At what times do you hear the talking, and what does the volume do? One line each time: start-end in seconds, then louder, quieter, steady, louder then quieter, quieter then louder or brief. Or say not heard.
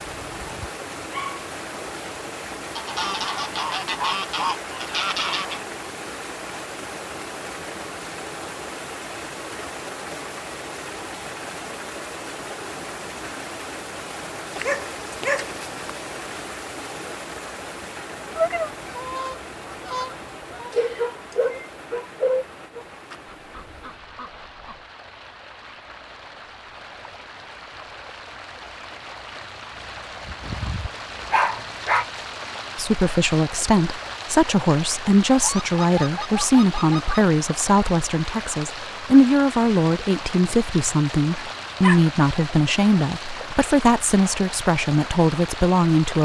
32.8-46.2 steady.